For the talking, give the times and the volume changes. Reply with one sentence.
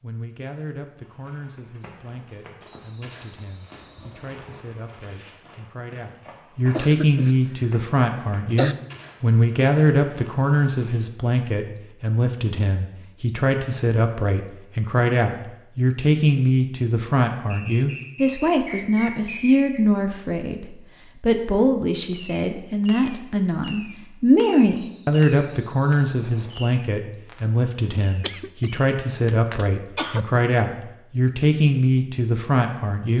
The talking can be heard from 0.0 to 33.1 s, getting louder.